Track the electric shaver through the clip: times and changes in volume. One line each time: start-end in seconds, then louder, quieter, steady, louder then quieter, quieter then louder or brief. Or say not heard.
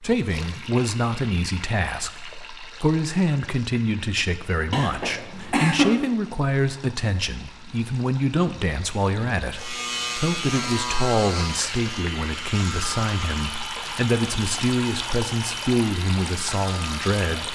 9.6-17.5 quieter.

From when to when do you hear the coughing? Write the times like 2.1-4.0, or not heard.
4.7-5.9.